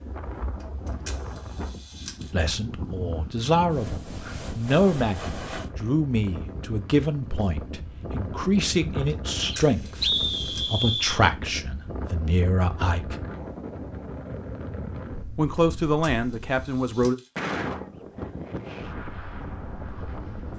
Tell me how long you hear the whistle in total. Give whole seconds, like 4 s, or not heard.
2 s.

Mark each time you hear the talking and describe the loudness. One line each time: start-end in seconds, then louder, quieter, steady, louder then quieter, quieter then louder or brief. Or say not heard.
2.3-13.2 steady
15.3-17.1 brief.